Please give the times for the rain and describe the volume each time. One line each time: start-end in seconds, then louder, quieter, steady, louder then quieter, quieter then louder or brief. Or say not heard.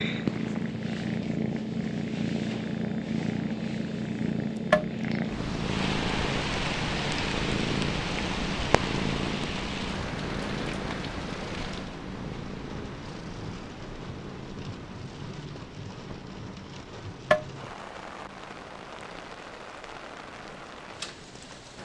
5.5-21.8 quieter.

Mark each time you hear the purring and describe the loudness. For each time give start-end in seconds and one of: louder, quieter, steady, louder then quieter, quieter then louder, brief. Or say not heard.
0.0-21.8 quieter.